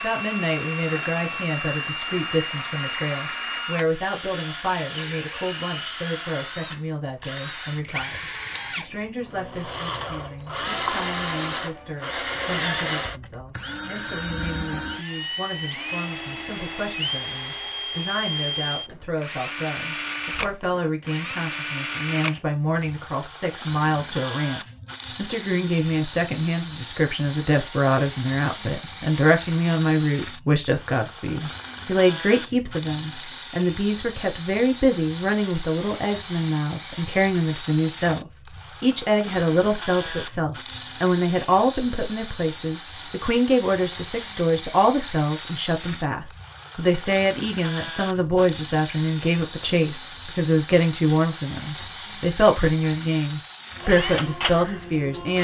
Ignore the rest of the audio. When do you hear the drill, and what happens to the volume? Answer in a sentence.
The drill can be heard from 0.0 to 55.3 s, at a steady volume.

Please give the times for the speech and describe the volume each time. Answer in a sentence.
The speech can be heard from 0.0 to 55.3 s, getting louder.